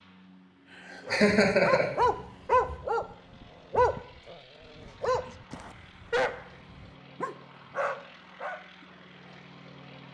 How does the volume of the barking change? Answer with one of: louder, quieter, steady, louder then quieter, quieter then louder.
quieter.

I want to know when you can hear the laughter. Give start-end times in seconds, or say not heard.
1.1-2.8.